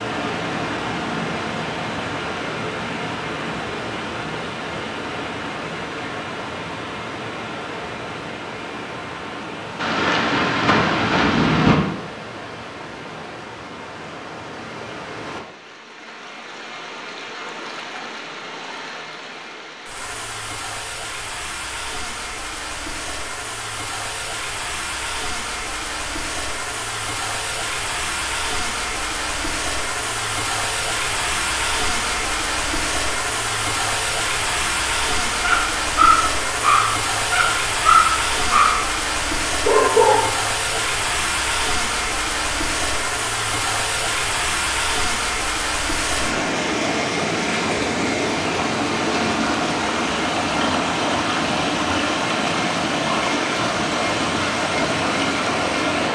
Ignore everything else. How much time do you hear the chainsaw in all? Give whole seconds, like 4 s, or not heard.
not heard.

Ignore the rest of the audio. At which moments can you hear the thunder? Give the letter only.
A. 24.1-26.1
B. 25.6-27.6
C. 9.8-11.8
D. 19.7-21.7
C.